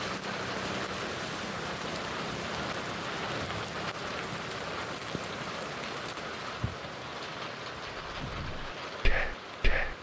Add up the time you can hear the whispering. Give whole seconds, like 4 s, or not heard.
2 s.